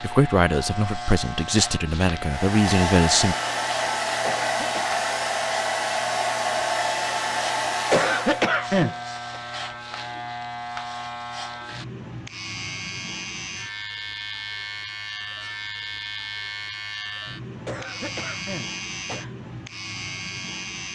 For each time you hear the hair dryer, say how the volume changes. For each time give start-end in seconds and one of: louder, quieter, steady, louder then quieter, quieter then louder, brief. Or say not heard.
2.2-8.5 steady.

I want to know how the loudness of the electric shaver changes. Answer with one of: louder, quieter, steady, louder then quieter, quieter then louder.
steady.